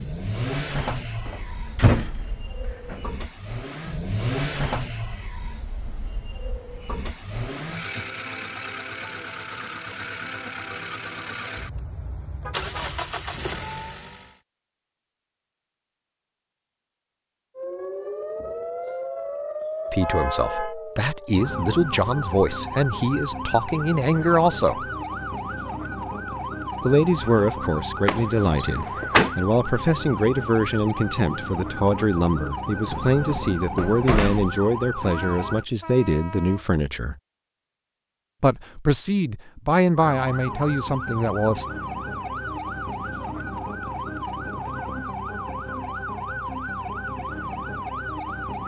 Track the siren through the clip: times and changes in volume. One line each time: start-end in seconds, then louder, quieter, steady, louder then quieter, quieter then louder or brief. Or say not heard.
17.6-35.6 steady
40.0-48.6 steady.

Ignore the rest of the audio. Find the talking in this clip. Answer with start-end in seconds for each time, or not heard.
19.9-24.9, 26.8-37.1, 38.4-41.6.